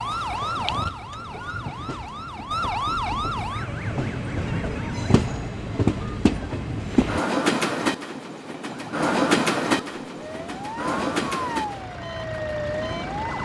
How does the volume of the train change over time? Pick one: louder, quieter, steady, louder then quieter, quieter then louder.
louder then quieter.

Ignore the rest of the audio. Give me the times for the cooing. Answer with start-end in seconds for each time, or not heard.
not heard.